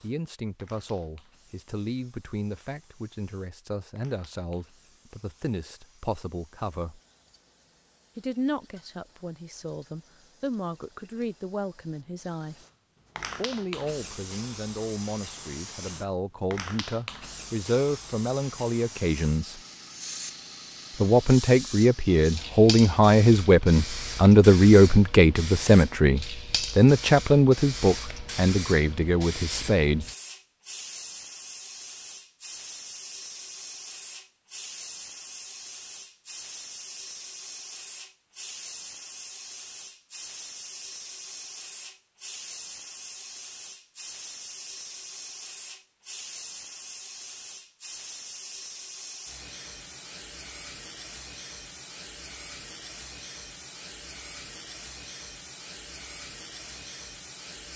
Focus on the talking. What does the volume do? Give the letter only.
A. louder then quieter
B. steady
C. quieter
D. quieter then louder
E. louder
E.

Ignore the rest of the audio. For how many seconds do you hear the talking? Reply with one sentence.
You can hear the talking for 27 seconds altogether.